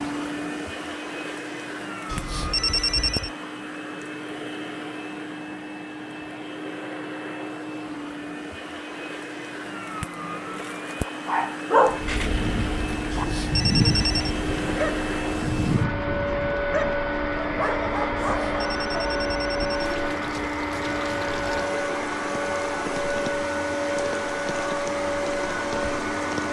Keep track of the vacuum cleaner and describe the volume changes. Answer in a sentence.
The loudness of the vacuum cleaner goes up.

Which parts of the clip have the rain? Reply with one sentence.
You can hear the rain from 11.8 to 26.4 s.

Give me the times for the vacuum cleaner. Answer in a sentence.
The vacuum cleaner can be heard from 0.0 to 26.4 s.